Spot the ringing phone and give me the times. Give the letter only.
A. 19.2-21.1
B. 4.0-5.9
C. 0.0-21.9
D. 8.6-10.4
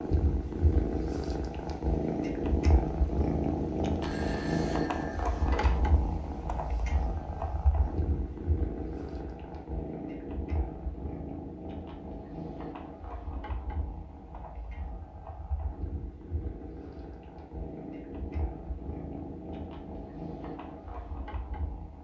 B.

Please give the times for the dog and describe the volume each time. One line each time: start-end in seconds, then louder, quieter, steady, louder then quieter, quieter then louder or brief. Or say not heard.
not heard.